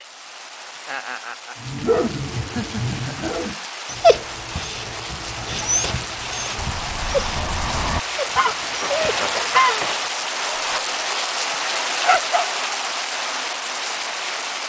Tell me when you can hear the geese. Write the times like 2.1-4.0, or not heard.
6.5-9.9.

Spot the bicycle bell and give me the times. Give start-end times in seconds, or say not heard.
not heard.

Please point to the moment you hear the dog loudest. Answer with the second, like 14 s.
4 s.